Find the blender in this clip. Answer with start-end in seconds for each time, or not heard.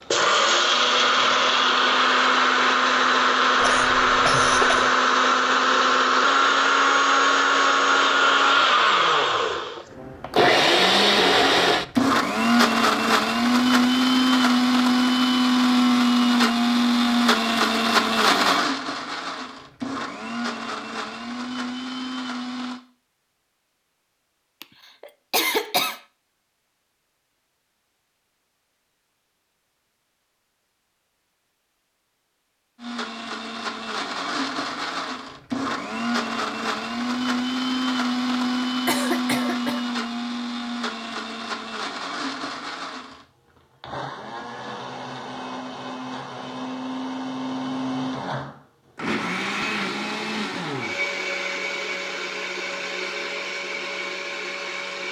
0.1-22.8, 32.8-55.0.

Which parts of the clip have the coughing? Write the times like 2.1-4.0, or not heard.
3.5-4.9, 24.6-26.0, 38.9-39.9.